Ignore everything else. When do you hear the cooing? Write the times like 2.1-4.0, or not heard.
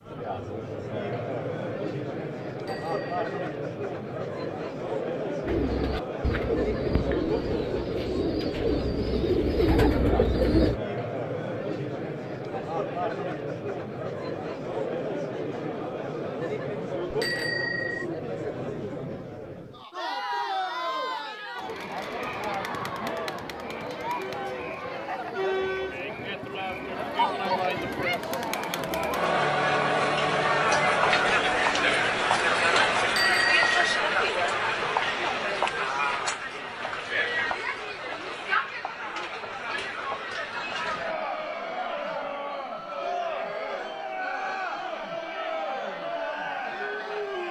5.4-10.8.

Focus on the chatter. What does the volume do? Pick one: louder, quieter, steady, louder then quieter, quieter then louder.
louder then quieter.